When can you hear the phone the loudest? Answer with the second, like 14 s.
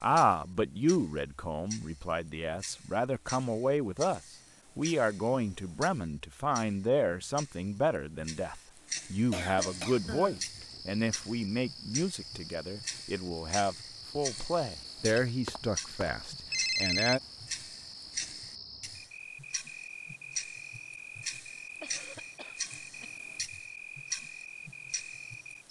17 s.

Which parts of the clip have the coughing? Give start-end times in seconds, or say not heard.
9.3-10.4, 21.8-23.1.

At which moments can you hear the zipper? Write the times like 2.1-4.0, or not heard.
not heard.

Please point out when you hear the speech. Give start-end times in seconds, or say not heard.
0.0-17.2.